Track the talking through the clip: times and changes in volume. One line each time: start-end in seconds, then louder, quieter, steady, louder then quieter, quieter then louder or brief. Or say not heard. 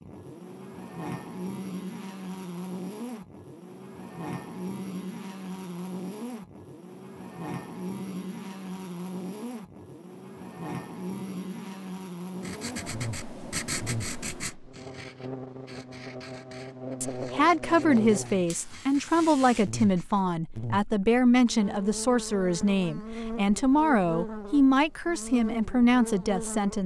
17.0-26.8 steady.